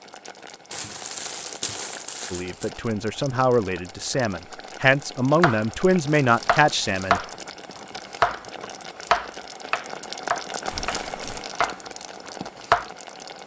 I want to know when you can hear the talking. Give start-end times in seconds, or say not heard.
2.3-7.2.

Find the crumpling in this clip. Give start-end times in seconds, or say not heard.
0.7-2.7, 6.0-6.8, 10.7-11.4.